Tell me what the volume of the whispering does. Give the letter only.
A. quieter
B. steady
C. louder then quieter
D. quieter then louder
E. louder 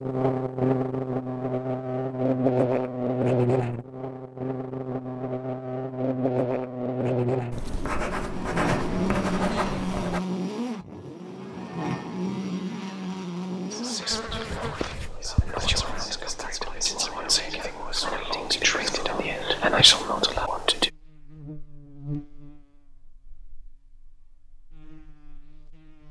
E.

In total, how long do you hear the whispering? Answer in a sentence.
The whispering can be heard for 7 seconds in total.